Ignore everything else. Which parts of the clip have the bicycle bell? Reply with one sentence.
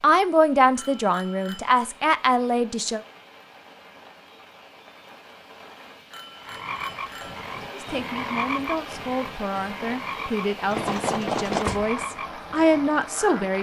The bicycle bell can be heard from 0.8 to 1.8 s, from 6.1 to 7.5 s and from 10.7 to 11.9 s.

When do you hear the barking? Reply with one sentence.
The barking can't be heard in this clip.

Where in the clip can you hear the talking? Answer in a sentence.
You can hear the talking from 0.0 to 3.0 s and from 7.7 to 13.5 s.